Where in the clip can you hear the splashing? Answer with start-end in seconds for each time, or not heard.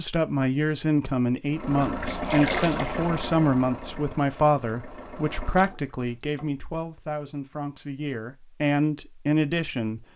1.8-3.2, 5.5-6.7.